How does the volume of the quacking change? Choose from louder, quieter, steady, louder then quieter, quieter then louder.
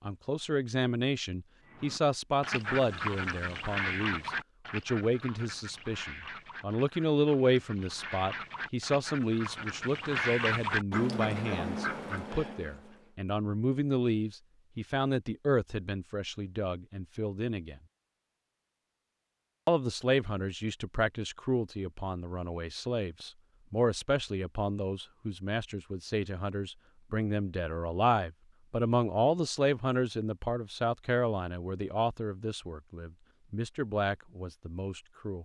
quieter then louder.